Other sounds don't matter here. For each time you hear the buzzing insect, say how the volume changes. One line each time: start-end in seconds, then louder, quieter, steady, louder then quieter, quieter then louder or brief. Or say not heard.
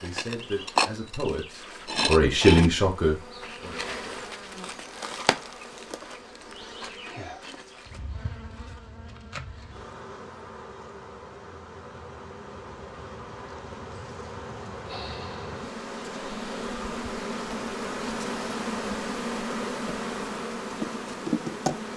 0.0-21.9 quieter then louder.